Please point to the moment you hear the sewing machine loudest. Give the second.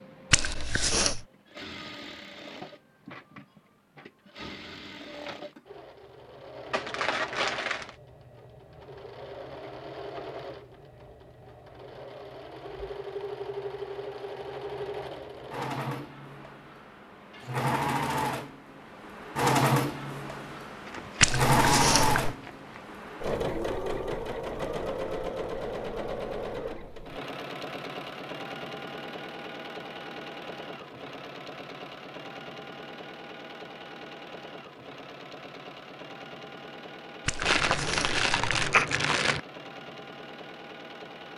22 s.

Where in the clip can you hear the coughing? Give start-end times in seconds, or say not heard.
0.3-1.2, 21.2-22.4, 37.2-38.9.